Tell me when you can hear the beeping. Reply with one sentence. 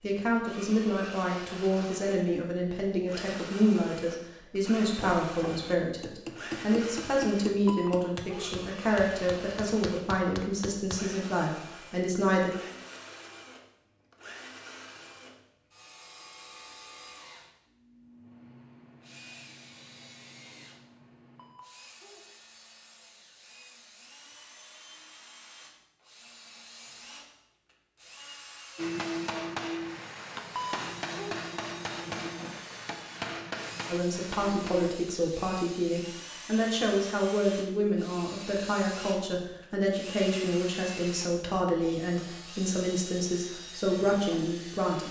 You can hear the beeping from 7.7 to 8.6 s, from 21.4 to 22.2 s and from 30.6 to 31.4 s.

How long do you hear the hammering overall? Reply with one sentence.
You can hear the hammering for 12 seconds altogether.